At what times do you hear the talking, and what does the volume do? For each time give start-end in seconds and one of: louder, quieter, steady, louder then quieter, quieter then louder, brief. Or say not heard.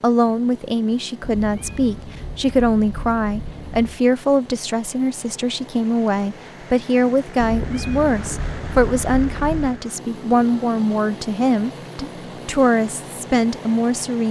0.0-14.2 steady.